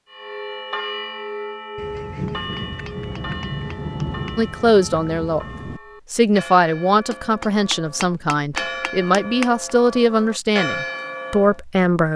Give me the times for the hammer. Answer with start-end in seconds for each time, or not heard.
1.9-4.3, 7.1-9.5.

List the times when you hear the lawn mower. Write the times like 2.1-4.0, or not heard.
not heard.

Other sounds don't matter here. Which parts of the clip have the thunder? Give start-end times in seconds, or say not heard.
1.8-5.8.